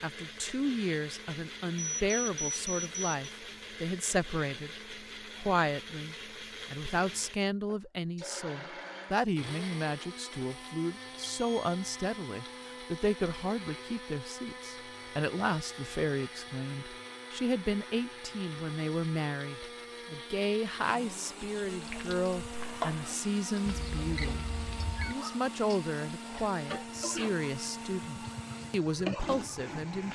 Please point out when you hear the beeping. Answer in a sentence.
The beeping can be heard from 1.8 to 3.1 s, from 11.2 to 11.8 s and from 23.6 to 25.1 s.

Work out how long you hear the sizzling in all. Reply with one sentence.
You can hear the sizzling for 8 seconds altogether.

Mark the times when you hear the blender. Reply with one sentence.
You can hear the blender from 0.0 to 30.0 s.